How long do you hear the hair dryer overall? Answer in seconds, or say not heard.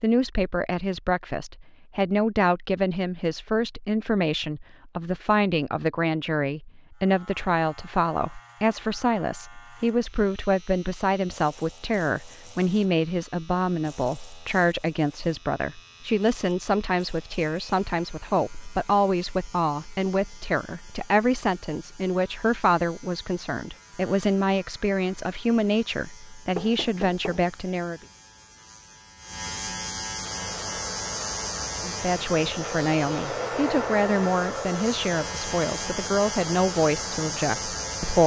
8 s.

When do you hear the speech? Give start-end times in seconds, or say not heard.
0.0-28.0, 31.8-38.2.